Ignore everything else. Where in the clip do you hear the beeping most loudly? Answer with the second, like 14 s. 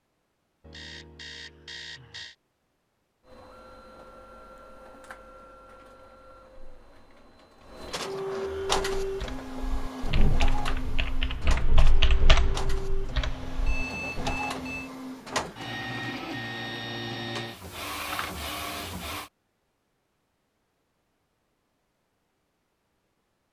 14 s.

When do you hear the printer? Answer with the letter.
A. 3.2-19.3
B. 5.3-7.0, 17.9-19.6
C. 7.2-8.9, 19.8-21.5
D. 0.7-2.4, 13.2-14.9
A.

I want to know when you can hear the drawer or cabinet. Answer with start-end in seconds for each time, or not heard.
not heard.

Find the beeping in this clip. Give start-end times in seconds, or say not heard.
0.7-2.4, 13.2-14.9.